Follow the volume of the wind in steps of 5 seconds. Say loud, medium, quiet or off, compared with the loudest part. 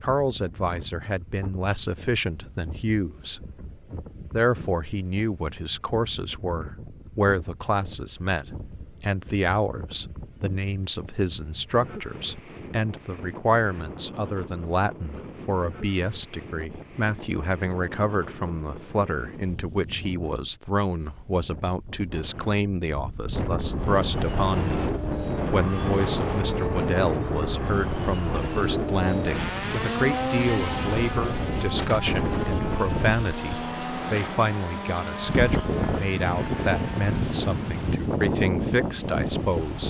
quiet, quiet, quiet, quiet, medium, loud, loud, loud.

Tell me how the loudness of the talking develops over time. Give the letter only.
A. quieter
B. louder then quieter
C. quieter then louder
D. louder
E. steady
E.